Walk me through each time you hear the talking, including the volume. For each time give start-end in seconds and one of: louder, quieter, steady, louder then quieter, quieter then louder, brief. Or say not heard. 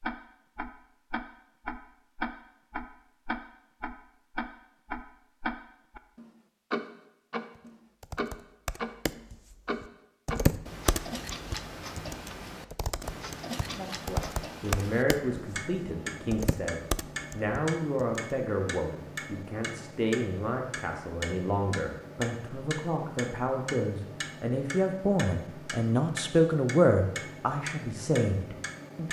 13.8-29.0 louder.